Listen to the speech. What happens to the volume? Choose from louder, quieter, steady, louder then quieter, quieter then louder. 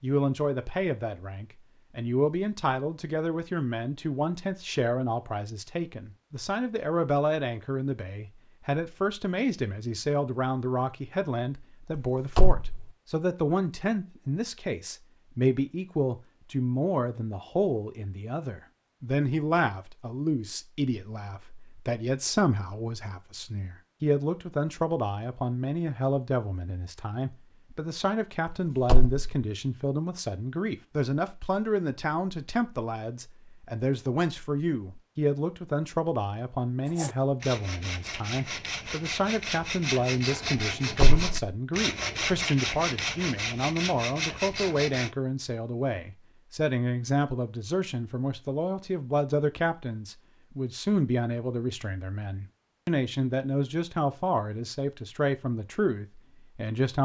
steady.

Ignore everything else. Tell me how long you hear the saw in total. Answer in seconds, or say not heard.
8 s.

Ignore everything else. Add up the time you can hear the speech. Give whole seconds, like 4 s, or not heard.
57 s.